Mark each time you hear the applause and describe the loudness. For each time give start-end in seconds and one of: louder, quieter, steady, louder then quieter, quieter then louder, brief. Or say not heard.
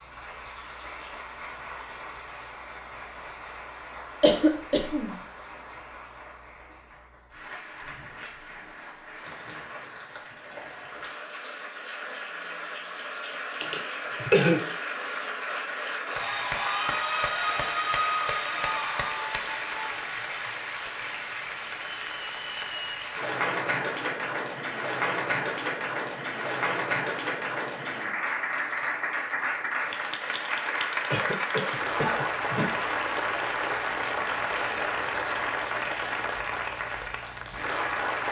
0.0-38.2 louder.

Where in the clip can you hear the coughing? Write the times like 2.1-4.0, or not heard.
4.2-5.2, 13.6-14.6, 31.1-32.8.